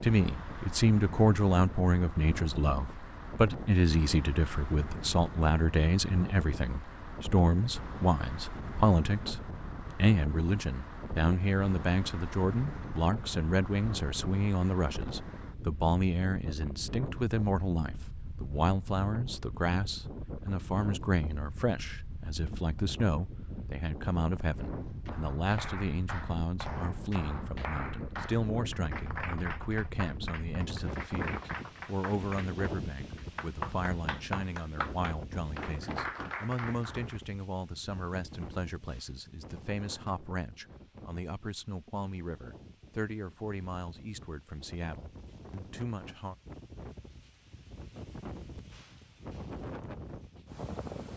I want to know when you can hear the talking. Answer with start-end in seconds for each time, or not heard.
0.0-9.4, 10.0-46.4.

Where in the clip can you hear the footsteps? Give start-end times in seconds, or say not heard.
not heard.